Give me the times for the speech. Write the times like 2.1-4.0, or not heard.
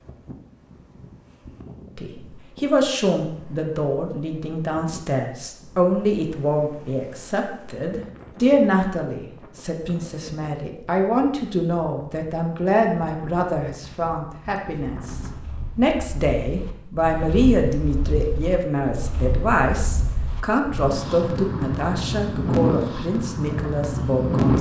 1.9-24.5.